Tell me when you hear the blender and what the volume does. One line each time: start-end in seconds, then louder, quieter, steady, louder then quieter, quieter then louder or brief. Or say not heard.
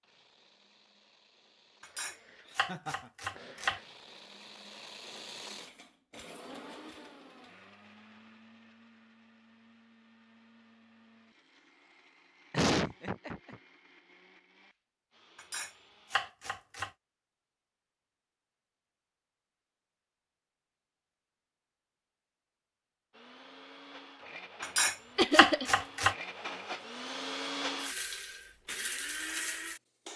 0.0-16.3 louder then quieter
23.1-30.1 louder.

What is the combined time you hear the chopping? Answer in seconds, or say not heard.
5 s.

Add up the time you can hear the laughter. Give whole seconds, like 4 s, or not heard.
2 s.